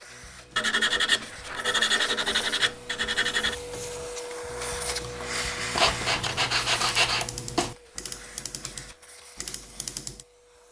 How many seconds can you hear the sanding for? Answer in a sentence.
The sanding can be heard for 5 seconds in total.